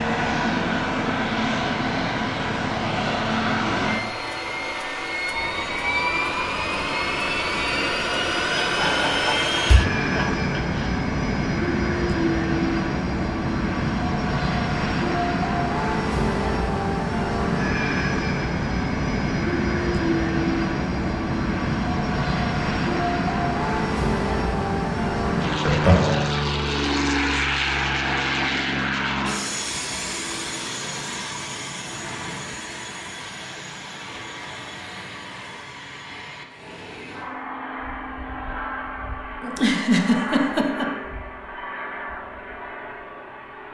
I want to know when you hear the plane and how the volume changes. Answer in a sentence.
You can hear the plane from 0.0 to 43.6 s, getting quieter.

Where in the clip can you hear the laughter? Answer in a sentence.
The laughter can be heard from 8.6 to 10.9 s, from 25.6 to 26.2 s and from 39.4 to 40.9 s.